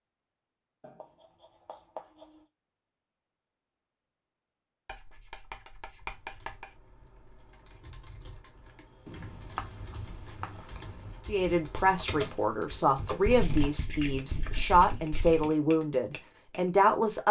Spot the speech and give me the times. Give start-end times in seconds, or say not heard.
11.2-17.2.